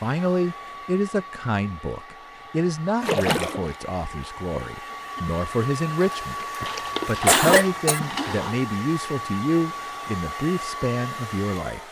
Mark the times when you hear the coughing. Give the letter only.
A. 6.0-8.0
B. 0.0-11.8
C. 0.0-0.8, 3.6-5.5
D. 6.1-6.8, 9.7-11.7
A.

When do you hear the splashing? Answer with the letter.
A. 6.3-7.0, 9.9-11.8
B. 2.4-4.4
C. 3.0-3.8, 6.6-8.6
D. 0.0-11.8
C.